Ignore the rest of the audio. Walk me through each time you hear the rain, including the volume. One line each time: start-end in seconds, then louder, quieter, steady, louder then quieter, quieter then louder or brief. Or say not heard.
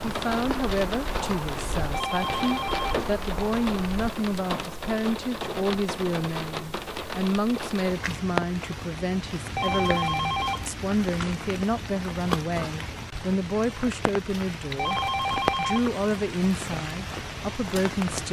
0.0-18.2 steady.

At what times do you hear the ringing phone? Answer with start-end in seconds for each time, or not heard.
1.9-3.0, 9.6-10.7, 14.8-15.9.